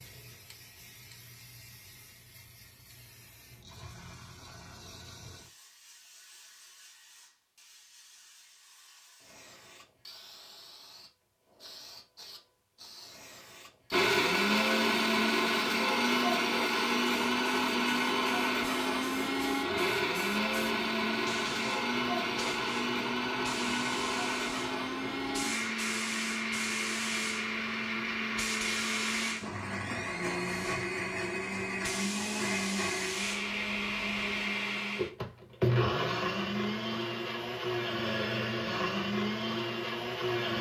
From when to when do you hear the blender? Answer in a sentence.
You can hear the blender from 13.9 to 40.5 s.